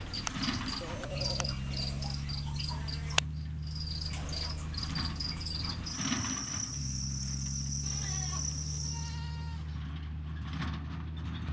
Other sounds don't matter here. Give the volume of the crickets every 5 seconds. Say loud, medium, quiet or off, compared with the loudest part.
loud, loud, off.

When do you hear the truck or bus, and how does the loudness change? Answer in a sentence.
The truck or bus can be heard from 0.0 to 11.4 s, at a steady volume.